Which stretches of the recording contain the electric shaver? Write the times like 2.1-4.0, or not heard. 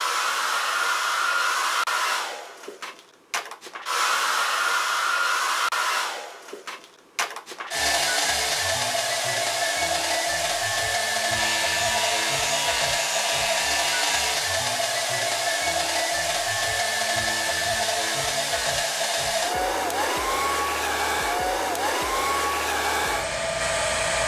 11.3-14.4.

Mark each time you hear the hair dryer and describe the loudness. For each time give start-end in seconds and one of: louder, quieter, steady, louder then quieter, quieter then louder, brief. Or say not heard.
0.0-24.2 steady.